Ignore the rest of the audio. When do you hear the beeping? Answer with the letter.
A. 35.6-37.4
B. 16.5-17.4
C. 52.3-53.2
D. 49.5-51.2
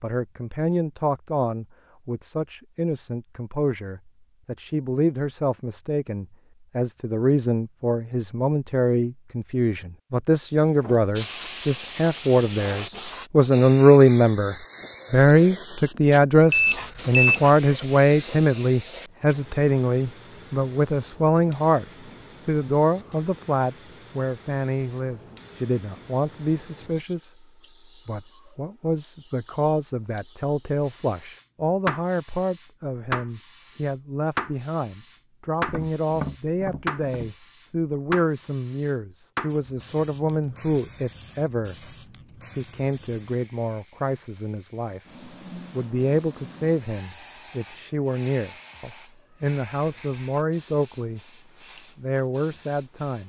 B.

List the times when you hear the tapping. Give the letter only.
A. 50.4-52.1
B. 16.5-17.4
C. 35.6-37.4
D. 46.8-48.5
C.